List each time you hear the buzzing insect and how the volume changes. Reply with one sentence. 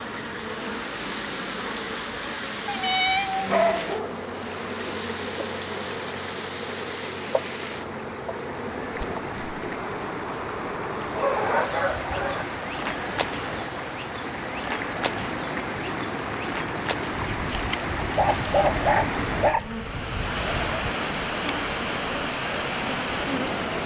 You can hear the buzzing insect from 0.0 to 23.6 s, at a steady volume.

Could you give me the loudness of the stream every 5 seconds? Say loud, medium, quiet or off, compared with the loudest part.
medium, medium, medium, loud, loud.